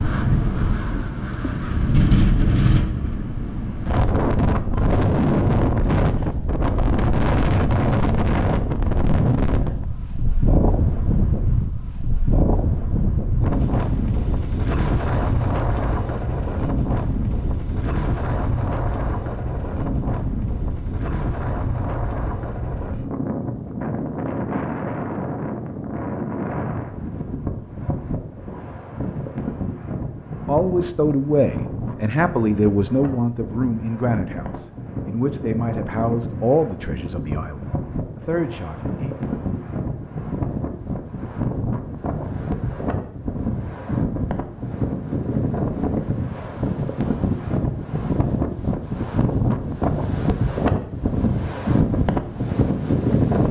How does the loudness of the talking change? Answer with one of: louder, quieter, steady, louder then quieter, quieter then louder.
quieter.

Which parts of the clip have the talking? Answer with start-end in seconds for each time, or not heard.
30.4-39.1.